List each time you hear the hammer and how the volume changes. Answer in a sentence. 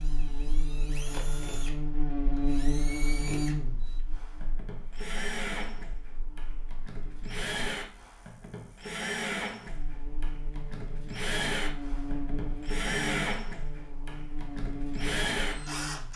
You can't hear the hammer here.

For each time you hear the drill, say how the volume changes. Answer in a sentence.
The drill can be heard from 0.0 to 16.1 s, getting louder.